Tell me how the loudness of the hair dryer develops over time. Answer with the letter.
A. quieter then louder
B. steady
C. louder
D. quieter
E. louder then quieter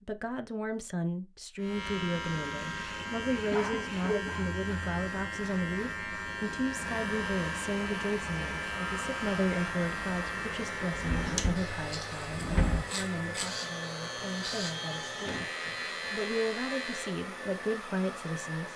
B.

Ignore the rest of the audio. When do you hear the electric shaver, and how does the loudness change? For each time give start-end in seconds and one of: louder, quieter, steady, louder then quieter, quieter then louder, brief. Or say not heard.
1.6-17.2 steady.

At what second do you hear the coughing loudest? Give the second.
4 s.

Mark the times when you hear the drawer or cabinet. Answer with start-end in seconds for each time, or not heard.
10.9-12.8.